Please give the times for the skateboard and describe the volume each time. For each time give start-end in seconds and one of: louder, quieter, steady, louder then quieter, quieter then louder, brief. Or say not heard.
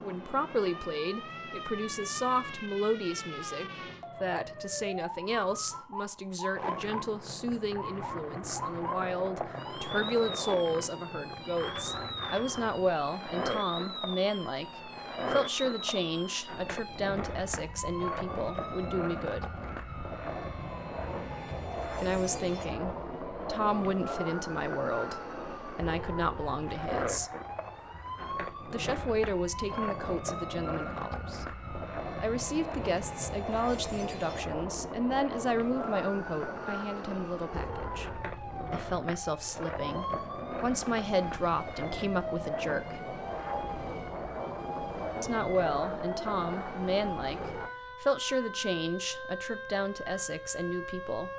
6.5-47.7 steady.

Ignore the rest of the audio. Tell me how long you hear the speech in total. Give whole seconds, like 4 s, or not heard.
44 s.